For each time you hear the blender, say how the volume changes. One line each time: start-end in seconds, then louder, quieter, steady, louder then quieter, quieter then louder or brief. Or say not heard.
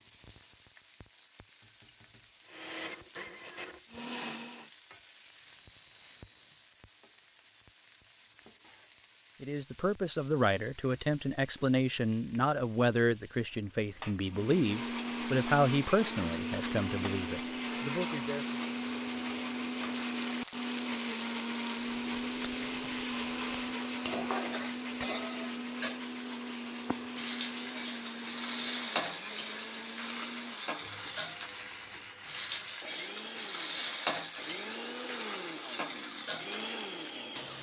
2.5-4.7 brief
14.2-37.5 quieter.